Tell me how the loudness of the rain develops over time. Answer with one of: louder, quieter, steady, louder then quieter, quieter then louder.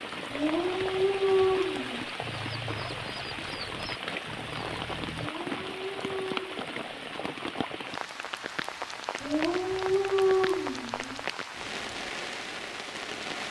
steady.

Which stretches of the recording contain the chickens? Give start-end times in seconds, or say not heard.
2.1-5.3.